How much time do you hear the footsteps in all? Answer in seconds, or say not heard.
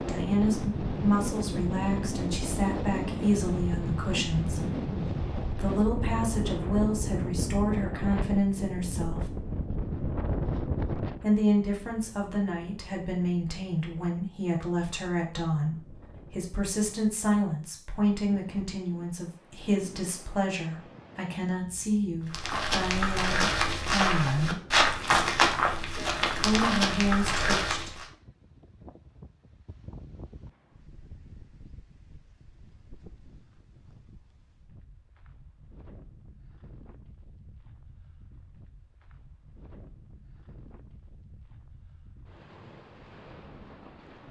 6 s.